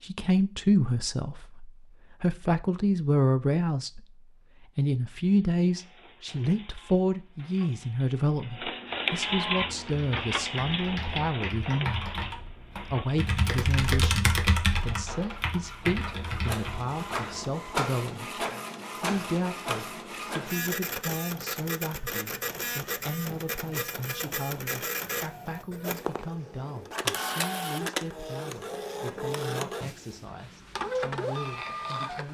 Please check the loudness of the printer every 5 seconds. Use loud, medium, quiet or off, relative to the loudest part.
off, loud, loud, loud, loud, loud, loud.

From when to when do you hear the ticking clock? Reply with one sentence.
You can't hear the ticking clock here.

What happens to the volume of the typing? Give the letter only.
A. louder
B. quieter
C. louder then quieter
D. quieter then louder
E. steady
C.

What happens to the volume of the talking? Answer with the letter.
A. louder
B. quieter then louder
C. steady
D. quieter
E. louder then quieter
D.